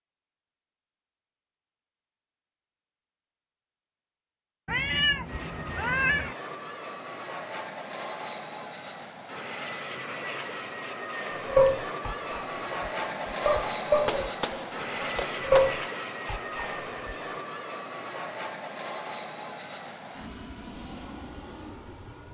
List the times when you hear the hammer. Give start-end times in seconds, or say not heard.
13.9-15.9.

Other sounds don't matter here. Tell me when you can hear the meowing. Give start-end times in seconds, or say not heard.
4.7-6.3.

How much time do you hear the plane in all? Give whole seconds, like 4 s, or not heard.
17 s.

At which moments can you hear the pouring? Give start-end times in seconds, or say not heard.
not heard.